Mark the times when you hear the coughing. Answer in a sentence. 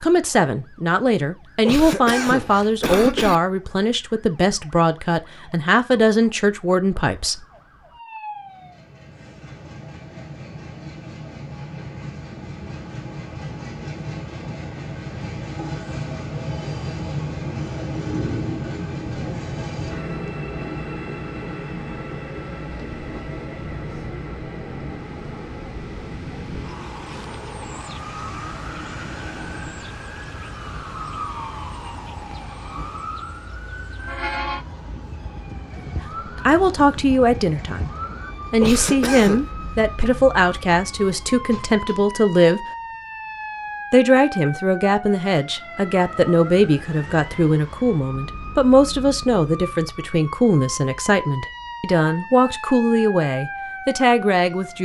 The coughing can be heard from 1.6 to 3.4 s and from 38.6 to 39.5 s.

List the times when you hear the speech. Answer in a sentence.
You can hear the speech from 0.0 to 7.5 s, from 35.8 to 37.9 s, from 38.5 to 42.6 s and from 43.9 to 54.8 s.